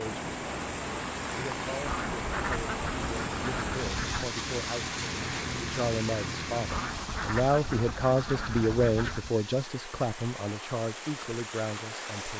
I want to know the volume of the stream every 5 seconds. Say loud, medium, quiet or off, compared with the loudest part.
loud, medium, loud.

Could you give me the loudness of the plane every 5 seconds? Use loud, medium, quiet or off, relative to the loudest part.
loud, loud, off.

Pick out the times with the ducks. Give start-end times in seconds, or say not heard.
1.8-4.3, 6.7-9.3.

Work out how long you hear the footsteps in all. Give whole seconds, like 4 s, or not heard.
not heard.